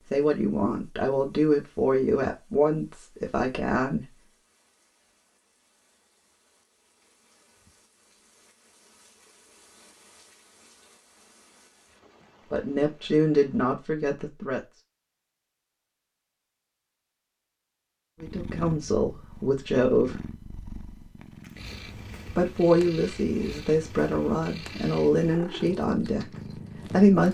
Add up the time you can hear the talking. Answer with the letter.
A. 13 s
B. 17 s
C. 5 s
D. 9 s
A.